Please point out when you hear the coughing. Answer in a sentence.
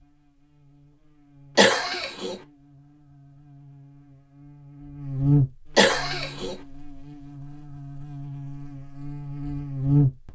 You can hear the coughing from 1.6 to 2.4 s and from 5.8 to 6.5 s.